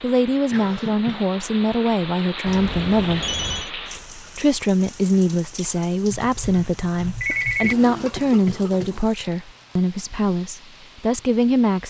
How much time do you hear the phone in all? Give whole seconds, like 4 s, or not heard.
3 s.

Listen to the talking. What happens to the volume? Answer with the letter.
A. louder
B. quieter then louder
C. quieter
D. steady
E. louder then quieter
D.